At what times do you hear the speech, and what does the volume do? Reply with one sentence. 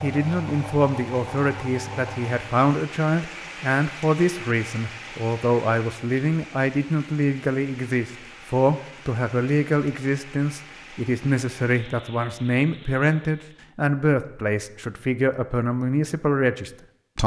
The speech can be heard from 0.0 to 17.2 s, at a steady volume.